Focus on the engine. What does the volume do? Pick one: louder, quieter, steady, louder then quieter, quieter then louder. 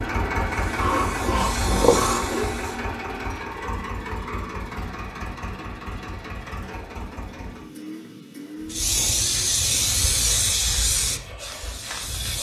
quieter.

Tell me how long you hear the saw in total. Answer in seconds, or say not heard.
2 s.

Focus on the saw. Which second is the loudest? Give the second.
2 s.